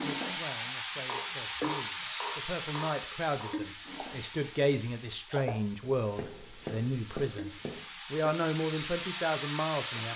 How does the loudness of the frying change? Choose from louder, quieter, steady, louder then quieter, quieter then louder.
quieter then louder.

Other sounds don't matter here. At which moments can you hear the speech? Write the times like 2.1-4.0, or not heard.
0.0-10.1.